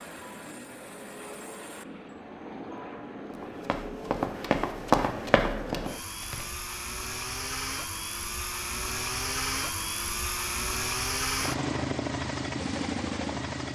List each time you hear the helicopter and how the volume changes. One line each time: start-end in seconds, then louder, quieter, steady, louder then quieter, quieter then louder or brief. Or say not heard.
0.0-13.6 louder.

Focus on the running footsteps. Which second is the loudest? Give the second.
5 s.